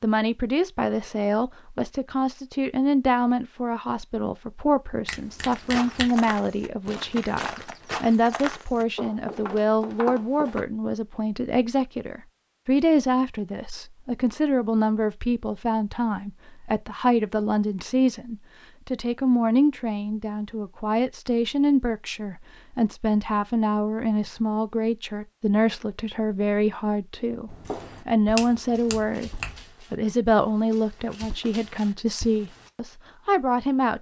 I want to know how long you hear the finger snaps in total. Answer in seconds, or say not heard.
2 s.